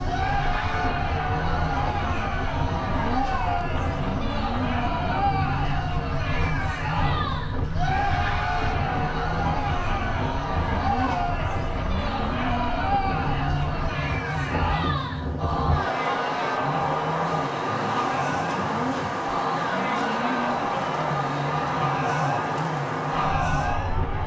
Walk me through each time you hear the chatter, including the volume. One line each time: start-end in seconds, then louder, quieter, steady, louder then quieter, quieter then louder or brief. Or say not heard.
0.0-24.1 steady.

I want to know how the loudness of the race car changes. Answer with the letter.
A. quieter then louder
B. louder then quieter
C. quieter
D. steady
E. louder
D.